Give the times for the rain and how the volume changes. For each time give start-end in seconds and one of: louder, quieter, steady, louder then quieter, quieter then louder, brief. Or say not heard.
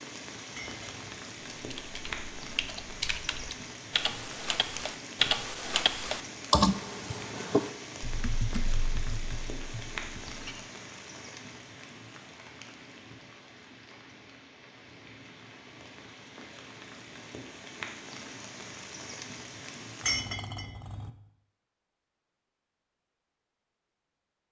0.0-20.5 quieter then louder.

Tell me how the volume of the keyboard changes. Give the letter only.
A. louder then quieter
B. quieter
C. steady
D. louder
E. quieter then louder
A.